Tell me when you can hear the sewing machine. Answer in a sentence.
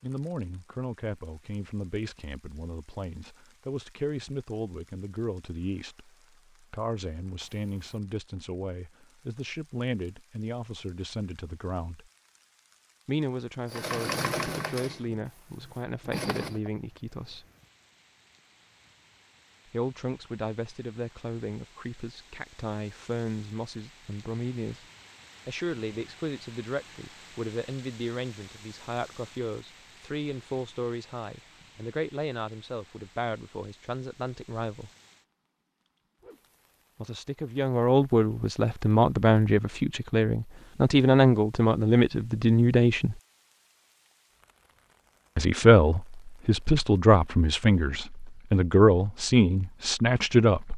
You can hear the sewing machine from 13.7 to 16.7 s.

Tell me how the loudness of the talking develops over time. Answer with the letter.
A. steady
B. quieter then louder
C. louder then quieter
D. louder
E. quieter
D.